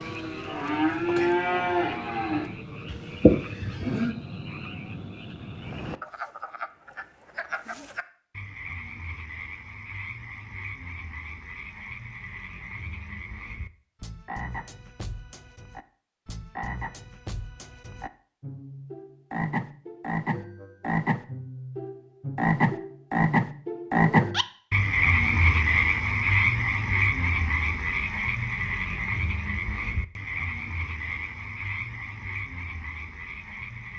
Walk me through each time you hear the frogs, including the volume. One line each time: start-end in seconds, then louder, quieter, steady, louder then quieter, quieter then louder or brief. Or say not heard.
0.0-33.9 louder then quieter.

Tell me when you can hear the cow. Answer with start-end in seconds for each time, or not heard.
0.0-4.2.